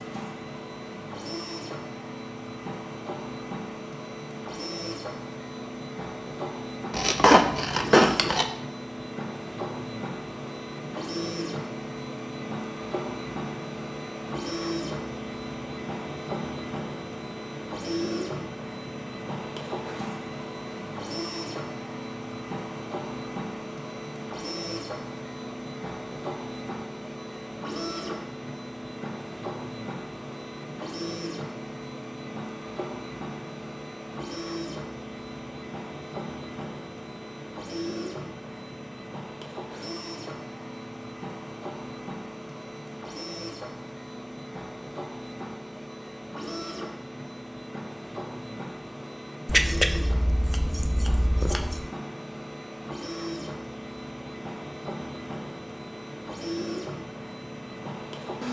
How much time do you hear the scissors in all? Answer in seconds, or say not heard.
4 s.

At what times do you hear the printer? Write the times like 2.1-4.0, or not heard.
0.0-58.4.